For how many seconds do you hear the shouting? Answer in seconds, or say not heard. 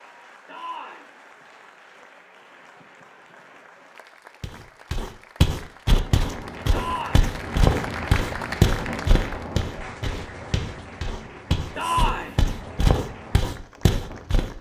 2 s.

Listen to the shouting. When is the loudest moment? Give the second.
12 s.